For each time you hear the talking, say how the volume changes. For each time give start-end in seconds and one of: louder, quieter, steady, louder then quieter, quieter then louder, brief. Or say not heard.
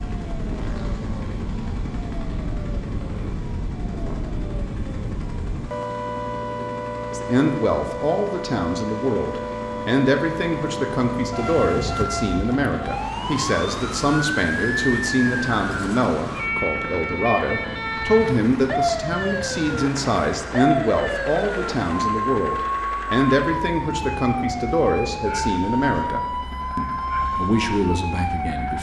7.1-28.7 steady.